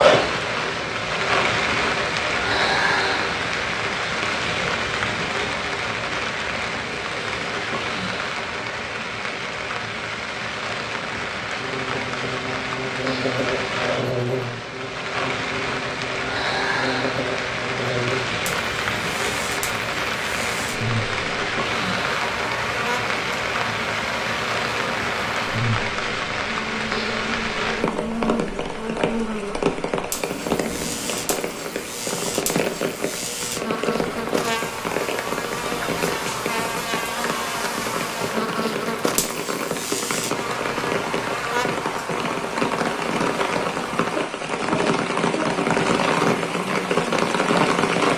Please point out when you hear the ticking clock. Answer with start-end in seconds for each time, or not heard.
not heard.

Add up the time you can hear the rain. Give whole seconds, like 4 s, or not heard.
48 s.